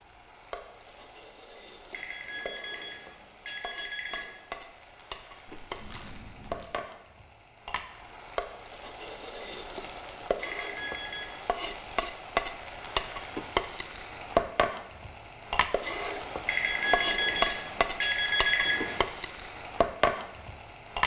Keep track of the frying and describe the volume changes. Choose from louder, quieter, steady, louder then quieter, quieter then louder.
louder.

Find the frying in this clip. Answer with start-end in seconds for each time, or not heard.
0.0-21.0.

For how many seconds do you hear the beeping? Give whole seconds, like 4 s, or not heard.
6 s.